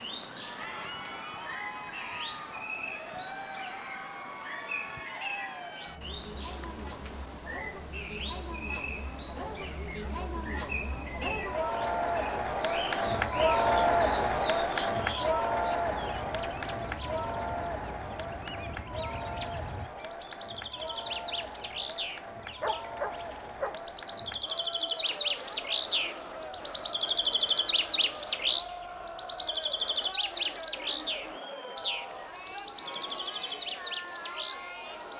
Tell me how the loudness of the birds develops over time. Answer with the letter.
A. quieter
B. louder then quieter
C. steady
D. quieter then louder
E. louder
E.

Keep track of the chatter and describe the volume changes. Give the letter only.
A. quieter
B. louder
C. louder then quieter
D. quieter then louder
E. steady
C.